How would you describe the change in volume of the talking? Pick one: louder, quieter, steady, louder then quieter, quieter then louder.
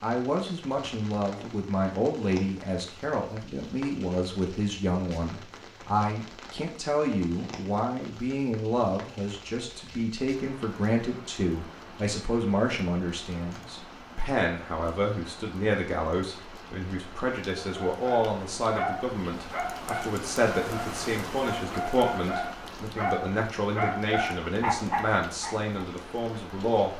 steady.